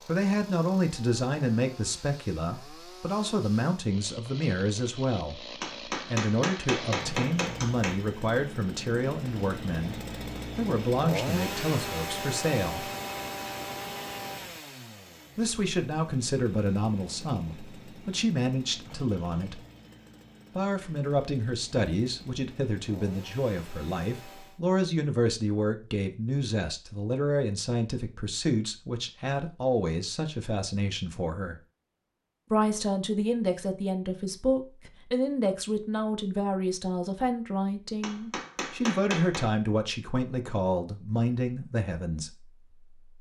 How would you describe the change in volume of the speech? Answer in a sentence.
The volume of the speech stays about the same.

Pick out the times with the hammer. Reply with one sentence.
The hammer can be heard from 5.6 to 8.0 s and from 38.0 to 39.5 s.